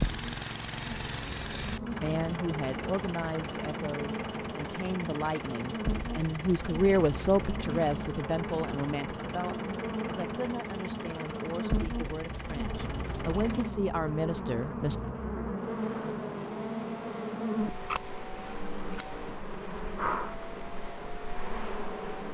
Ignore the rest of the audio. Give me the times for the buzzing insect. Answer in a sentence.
You can hear the buzzing insect from 0.0 to 22.2 s.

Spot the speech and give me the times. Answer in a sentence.
You can hear the speech from 2.0 to 14.9 s.